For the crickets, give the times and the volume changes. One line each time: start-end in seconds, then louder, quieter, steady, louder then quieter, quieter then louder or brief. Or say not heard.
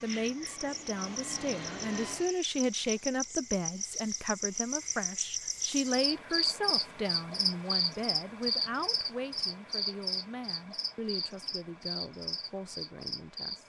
0.0-13.6 louder then quieter.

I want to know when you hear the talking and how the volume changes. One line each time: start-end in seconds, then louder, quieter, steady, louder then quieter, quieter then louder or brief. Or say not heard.
0.0-13.6 quieter.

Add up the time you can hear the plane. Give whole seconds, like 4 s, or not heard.
2 s.